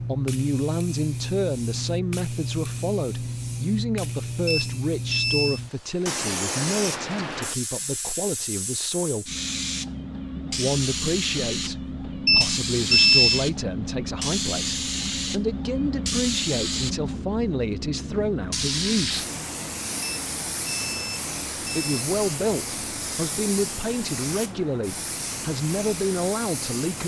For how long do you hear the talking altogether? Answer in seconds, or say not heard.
23 s.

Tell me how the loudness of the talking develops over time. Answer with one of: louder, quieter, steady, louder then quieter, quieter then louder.
steady.